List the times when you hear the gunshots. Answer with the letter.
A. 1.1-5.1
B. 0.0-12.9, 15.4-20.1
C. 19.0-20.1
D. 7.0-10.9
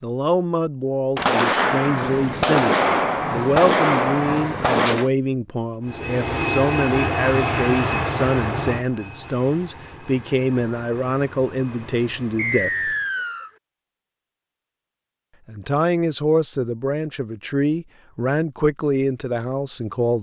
A.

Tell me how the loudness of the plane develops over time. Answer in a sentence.
The volume of the plane goes down.